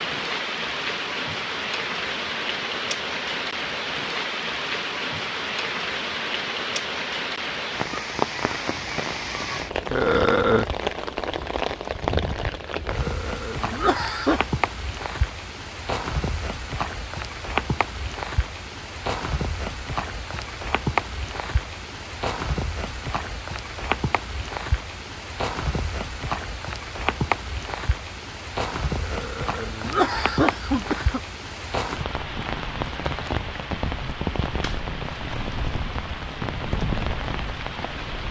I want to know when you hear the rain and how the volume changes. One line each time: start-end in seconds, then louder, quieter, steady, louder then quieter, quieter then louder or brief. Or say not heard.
0.0-38.2 steady.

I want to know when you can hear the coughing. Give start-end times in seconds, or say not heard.
9.9-10.7, 12.8-14.4, 29.0-31.2.